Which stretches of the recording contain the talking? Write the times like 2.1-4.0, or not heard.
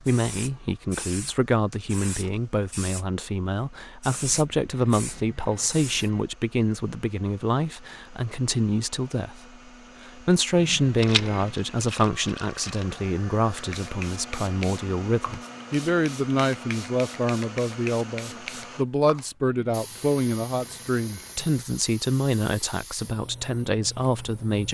0.1-9.4, 10.1-24.6.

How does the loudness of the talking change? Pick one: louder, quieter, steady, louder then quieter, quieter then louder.
steady.